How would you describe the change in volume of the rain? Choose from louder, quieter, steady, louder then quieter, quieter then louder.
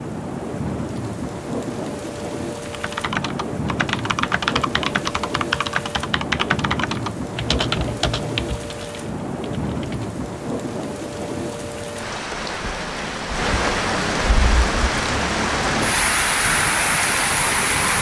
louder.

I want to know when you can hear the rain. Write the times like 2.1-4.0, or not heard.
0.0-17.9.